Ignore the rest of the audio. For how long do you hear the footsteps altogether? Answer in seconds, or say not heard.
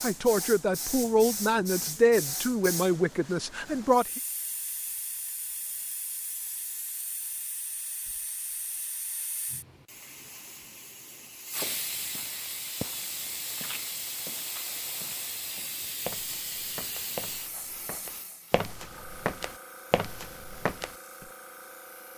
10 s.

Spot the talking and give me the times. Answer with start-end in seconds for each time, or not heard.
0.0-4.2.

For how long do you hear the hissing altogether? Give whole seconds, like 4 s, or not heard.
22 s.